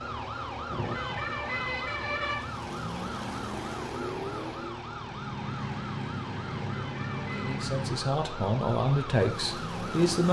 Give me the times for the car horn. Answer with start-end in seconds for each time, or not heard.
0.7-2.4, 6.5-7.7.